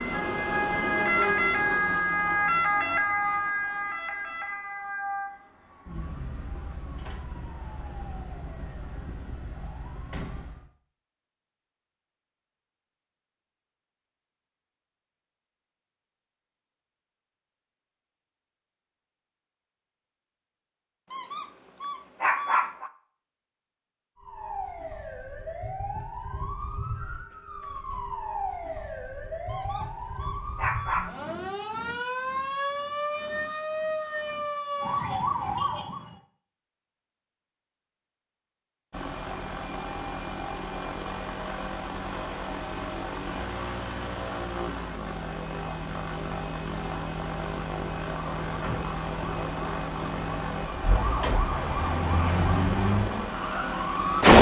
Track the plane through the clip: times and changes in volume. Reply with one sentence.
You can hear the plane from 38.9 to 54.3 s, at a steady volume.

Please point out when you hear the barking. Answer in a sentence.
You can hear the barking from 21.1 to 22.9 s and from 29.4 to 31.1 s.